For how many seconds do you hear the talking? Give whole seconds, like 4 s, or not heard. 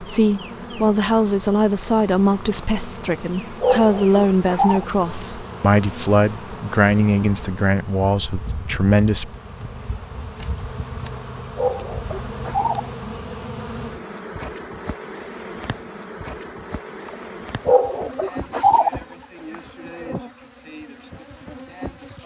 9 s.